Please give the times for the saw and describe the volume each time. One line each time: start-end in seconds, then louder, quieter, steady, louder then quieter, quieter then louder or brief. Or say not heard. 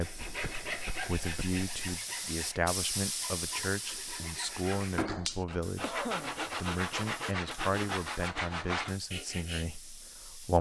0.0-9.7 quieter then louder.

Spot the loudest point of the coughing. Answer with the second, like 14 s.
6 s.